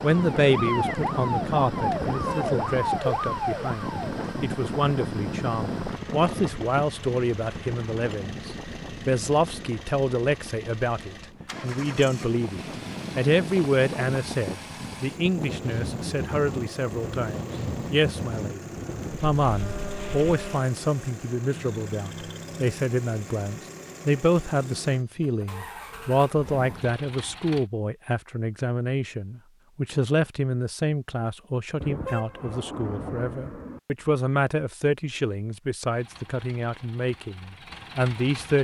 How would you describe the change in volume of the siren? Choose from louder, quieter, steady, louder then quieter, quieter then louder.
steady.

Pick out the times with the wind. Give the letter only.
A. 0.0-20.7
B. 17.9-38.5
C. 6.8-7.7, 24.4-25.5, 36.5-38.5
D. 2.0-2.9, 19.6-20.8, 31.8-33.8
A.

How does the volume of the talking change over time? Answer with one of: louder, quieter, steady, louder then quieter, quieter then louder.
steady.